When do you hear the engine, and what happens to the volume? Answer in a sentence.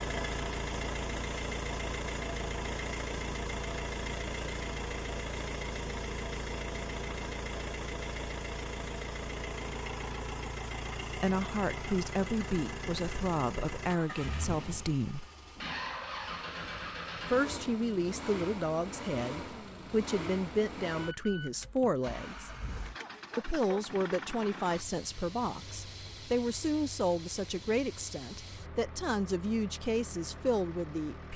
The engine can be heard from 0.0 to 31.3 s, getting quieter.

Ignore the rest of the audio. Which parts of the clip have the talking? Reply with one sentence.
The talking can be heard from 11.1 to 15.2 s, from 17.2 to 22.5 s and from 23.4 to 31.3 s.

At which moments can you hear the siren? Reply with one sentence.
You can't hear the siren here.